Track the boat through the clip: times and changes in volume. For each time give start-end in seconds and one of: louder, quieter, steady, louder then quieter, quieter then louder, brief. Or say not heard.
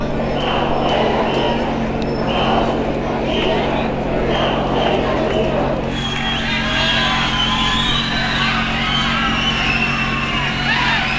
0.0-11.1 steady.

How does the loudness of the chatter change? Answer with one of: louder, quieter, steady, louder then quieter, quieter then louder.
steady.